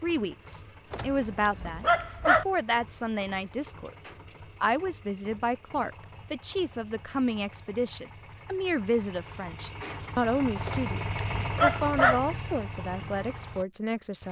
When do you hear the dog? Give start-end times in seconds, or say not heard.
0.9-2.5, 10.7-12.2.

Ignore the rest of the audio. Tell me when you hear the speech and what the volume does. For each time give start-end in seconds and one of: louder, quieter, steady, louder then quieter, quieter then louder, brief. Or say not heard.
0.0-14.2 steady.